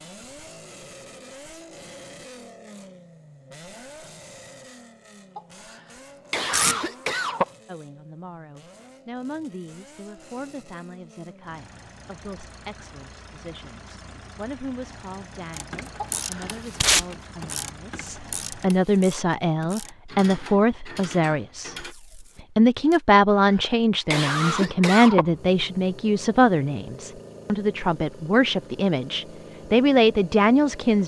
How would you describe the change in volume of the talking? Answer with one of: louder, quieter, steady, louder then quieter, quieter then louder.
louder.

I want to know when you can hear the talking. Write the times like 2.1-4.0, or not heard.
7.7-21.8, 22.6-31.0.